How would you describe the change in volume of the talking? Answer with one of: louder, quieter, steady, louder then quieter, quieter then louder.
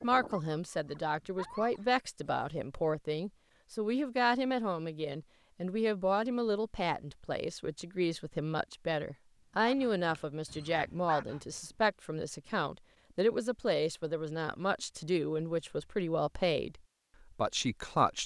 steady.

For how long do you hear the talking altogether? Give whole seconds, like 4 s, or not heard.
18 s.